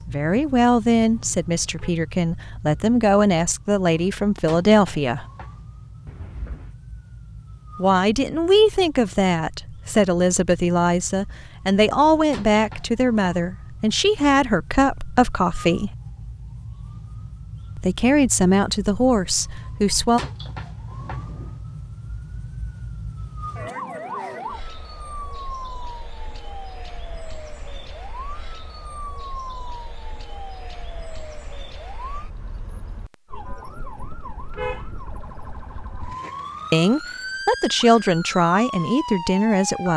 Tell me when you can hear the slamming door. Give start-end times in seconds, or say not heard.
6.0-6.8.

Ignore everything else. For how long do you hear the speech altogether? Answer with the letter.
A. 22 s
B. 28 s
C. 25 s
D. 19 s
D.